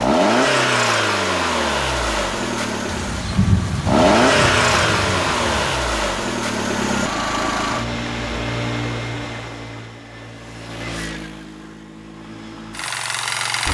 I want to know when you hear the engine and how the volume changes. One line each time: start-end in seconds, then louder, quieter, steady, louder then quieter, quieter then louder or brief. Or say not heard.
0.0-13.7 quieter.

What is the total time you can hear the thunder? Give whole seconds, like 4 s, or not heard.
3 s.